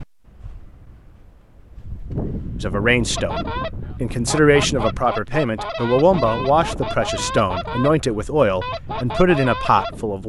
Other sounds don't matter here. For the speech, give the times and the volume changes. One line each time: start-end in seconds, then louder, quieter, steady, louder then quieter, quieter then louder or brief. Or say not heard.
2.6-10.2 louder.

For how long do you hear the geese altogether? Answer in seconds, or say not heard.
7 s.